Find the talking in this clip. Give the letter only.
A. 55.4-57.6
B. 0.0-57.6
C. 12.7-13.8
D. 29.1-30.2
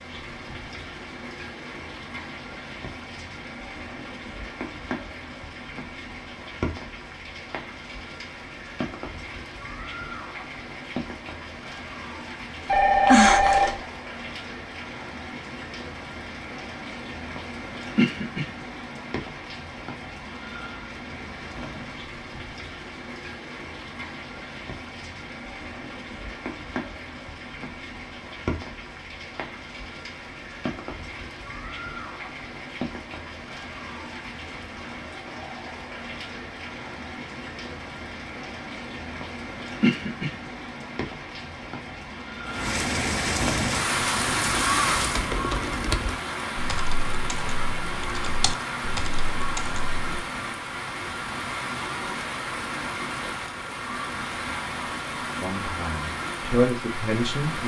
A.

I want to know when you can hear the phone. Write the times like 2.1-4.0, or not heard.
12.7-13.8.